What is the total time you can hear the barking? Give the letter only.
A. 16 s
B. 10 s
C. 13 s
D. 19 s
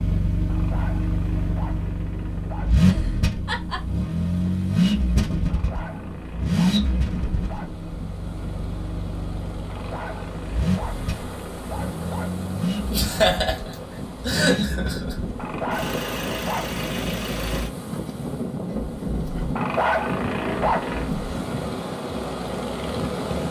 B.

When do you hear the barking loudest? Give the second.
20 s.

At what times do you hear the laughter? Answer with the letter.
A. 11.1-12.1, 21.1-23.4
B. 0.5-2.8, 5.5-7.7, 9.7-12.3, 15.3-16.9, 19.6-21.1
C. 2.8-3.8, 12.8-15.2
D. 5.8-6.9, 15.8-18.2
C.